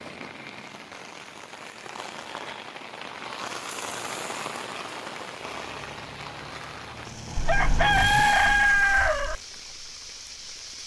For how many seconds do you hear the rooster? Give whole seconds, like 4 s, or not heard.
2 s.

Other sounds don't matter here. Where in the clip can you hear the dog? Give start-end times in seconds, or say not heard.
not heard.